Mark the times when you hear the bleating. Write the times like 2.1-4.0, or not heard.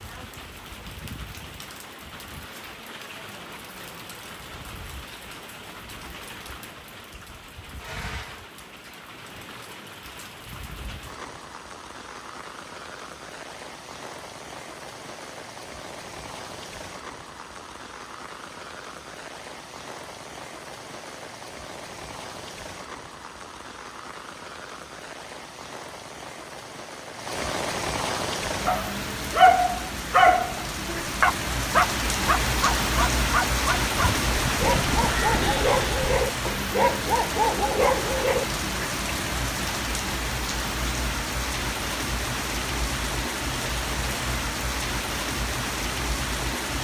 34.0-36.2.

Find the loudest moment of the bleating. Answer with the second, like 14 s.
35 s.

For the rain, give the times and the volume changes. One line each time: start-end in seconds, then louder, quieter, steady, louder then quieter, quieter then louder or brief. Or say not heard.
0.0-46.7 louder.